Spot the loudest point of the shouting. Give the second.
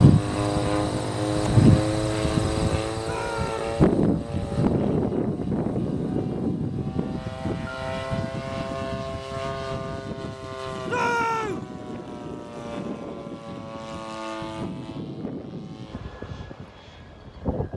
11 s.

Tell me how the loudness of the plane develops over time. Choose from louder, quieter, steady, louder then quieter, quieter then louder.
quieter.